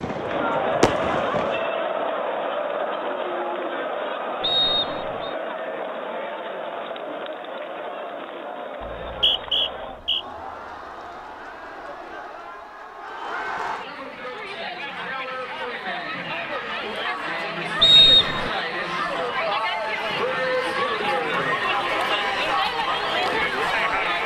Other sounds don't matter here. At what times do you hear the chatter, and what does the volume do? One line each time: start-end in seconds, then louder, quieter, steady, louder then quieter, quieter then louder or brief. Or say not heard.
0.0-24.2 quieter then louder.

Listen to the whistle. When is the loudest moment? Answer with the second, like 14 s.
18 s.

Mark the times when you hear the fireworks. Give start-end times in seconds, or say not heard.
0.0-1.6.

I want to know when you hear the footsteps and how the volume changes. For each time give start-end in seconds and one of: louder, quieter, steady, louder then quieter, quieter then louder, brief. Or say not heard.
not heard.